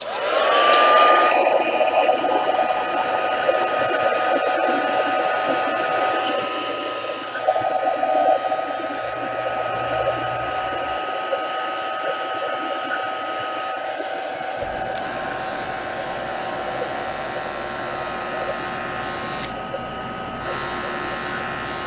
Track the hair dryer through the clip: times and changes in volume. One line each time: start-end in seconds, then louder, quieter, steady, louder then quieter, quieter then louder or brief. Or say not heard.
0.0-21.8 quieter.